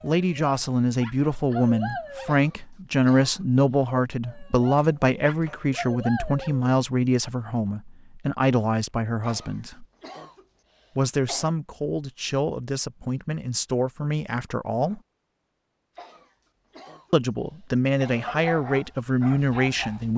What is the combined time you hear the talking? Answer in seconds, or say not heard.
17 s.